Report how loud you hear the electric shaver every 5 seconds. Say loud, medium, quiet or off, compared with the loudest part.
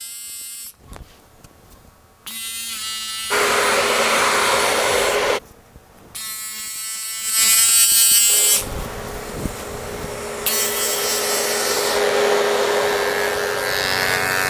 medium, loud, loud.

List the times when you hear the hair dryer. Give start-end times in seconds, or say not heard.
3.3-5.4, 8.2-14.4.